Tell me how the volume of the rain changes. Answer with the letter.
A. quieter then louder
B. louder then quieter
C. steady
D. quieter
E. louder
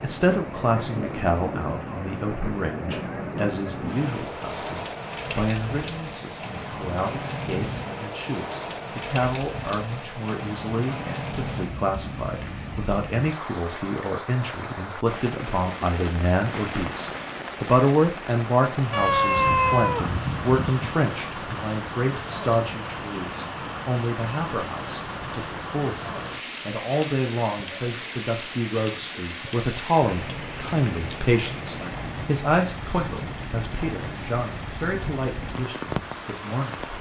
C.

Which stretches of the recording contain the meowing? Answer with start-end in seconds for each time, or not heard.
18.9-20.9.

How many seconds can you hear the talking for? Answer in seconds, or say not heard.
37 s.